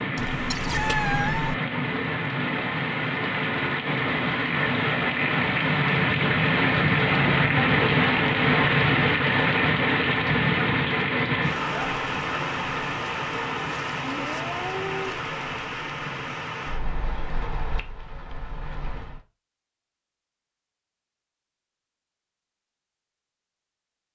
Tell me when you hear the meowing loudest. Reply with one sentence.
The volume of the meowing peaks at 1 second.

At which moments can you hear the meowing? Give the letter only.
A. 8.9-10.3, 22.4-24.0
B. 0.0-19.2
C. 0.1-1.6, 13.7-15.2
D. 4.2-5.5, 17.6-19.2
C.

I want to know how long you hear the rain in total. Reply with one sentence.
The rain can be heard for 19 seconds in total.